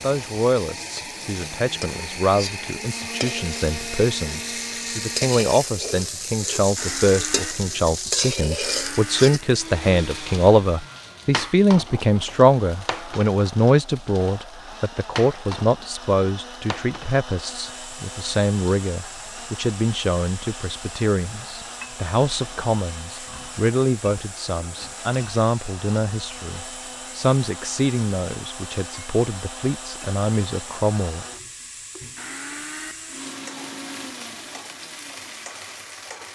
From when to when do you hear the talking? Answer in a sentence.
The talking can be heard from 0.0 to 31.2 s.